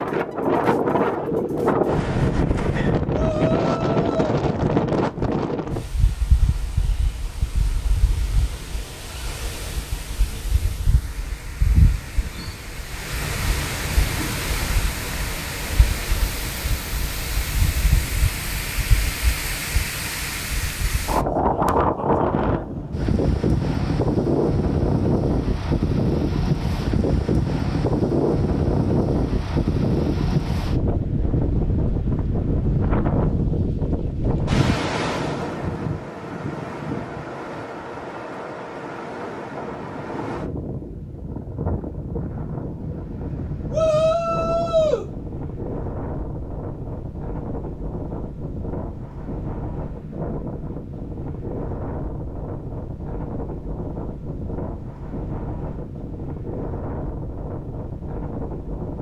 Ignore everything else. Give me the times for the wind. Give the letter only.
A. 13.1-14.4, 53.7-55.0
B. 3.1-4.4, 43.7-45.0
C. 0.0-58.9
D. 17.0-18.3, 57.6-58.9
C.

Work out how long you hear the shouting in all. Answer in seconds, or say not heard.
3 s.